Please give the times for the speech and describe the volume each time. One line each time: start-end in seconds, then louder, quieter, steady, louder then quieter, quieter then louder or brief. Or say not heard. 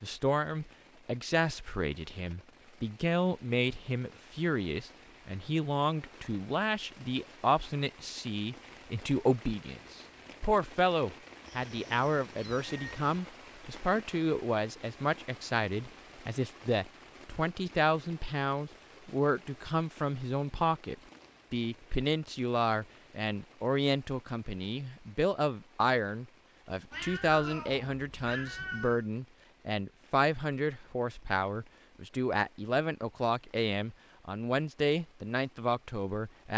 0.0-36.5 steady.